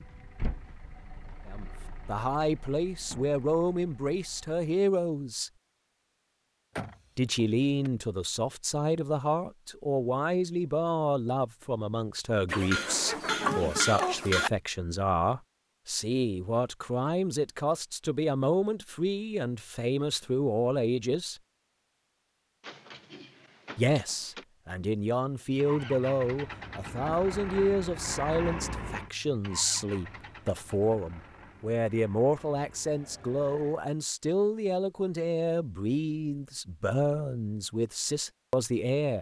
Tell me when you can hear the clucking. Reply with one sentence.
You can hear the clucking from 12.4 to 14.5 s.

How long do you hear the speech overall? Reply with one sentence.
You can hear the speech for 34 seconds altogether.